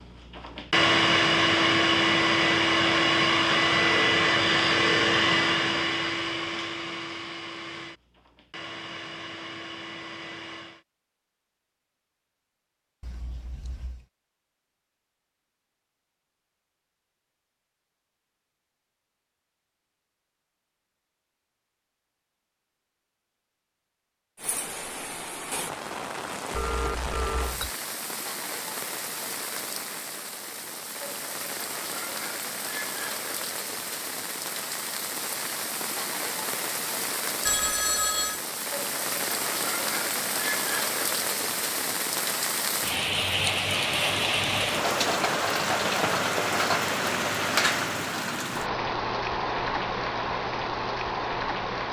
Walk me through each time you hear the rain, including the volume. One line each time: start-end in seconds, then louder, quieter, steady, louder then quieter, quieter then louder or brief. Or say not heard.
24.4-51.8 louder.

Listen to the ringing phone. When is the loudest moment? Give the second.
38 s.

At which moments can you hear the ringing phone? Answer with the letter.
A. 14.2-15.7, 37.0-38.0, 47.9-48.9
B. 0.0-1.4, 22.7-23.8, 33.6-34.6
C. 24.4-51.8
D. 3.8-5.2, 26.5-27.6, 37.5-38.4
D.